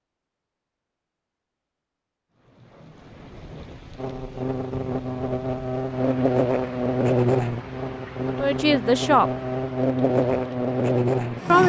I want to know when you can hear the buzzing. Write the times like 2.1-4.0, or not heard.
4.0-11.6.